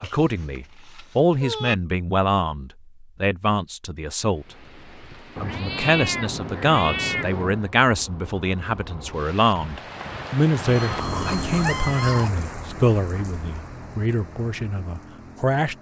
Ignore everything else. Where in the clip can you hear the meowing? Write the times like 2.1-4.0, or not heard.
0.0-1.8, 5.3-7.7, 10.8-12.5.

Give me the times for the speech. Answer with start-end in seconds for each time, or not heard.
0.0-4.5, 5.4-15.7.